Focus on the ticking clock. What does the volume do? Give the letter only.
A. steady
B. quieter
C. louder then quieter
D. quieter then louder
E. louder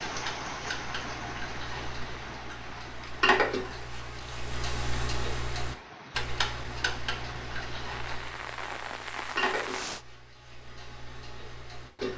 C.